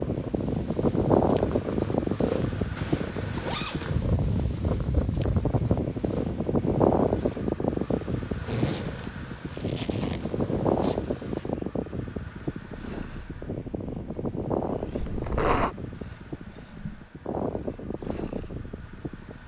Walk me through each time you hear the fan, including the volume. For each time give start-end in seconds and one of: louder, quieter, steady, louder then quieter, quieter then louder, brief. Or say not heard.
0.0-19.4 quieter.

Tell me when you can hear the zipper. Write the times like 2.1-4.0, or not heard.
2.8-4.0, 8.4-10.9, 15.0-15.8.